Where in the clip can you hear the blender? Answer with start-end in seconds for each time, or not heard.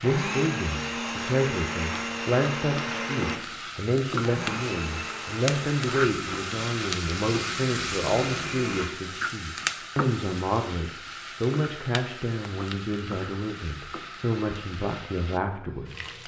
0.0-8.9.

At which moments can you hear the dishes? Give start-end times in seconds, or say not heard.
not heard.